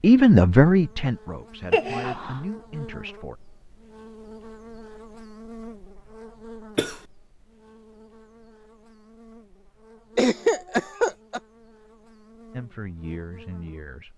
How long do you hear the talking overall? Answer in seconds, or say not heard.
5 s.